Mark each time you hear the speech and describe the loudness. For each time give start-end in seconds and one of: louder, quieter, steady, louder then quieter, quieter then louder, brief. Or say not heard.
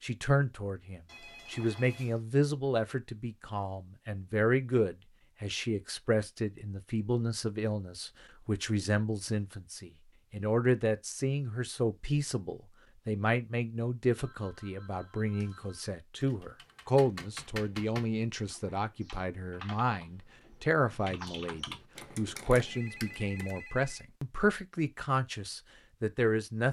0.0-26.6 steady.